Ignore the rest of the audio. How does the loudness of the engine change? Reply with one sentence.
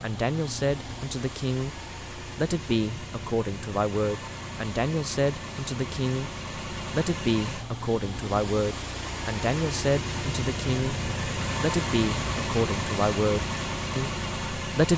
The volume of the engine goes up.